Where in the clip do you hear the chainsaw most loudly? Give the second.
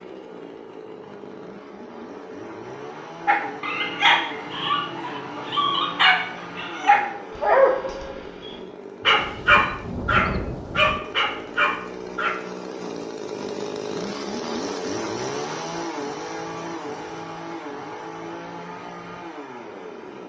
15 s.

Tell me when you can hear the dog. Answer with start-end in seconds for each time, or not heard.
3.2-12.3.